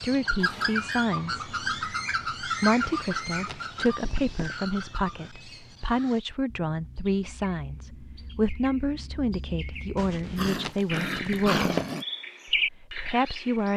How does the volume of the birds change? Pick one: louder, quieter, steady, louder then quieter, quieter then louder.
quieter then louder.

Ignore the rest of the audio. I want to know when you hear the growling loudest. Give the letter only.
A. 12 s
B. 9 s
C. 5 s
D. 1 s
A.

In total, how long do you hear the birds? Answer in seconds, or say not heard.
14 s.